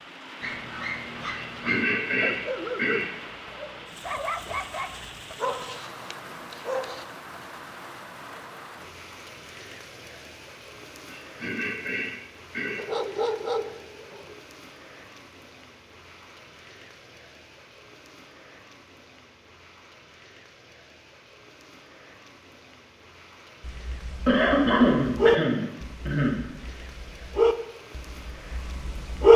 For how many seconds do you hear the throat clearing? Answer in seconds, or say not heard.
6 s.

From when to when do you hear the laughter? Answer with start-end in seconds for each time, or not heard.
not heard.